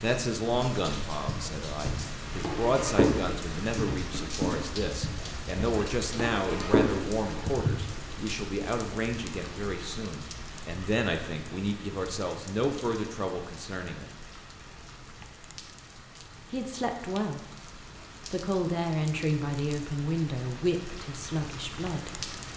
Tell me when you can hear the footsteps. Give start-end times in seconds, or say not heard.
1.2-8.2.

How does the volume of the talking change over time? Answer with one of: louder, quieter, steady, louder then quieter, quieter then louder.
steady.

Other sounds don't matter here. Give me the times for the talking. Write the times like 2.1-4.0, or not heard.
0.0-14.1, 16.5-22.2.